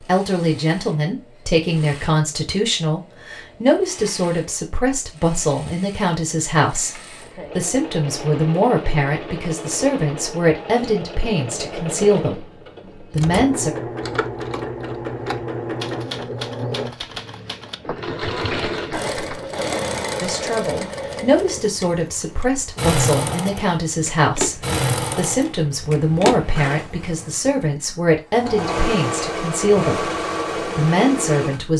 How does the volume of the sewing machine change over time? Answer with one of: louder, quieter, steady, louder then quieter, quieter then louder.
louder.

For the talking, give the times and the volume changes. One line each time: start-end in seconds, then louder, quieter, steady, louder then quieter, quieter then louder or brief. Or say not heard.
0.0-13.7 steady
20.2-31.7 steady.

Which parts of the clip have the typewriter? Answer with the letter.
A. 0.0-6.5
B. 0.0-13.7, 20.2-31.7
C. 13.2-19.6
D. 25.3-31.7
C.